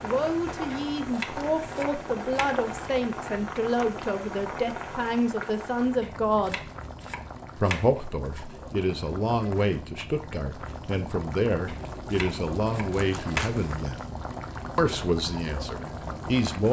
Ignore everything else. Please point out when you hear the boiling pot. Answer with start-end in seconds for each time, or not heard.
0.0-16.6.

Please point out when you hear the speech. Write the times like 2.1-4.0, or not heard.
0.0-6.6, 7.5-14.0, 14.8-16.6.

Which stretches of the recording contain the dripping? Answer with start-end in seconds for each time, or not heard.
not heard.